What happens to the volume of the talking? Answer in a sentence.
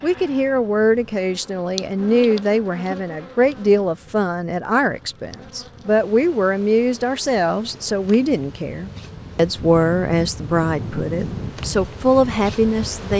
The volume of the talking stays about the same.